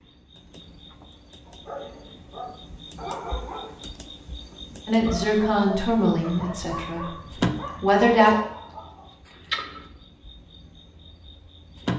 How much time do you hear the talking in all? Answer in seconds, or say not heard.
3 s.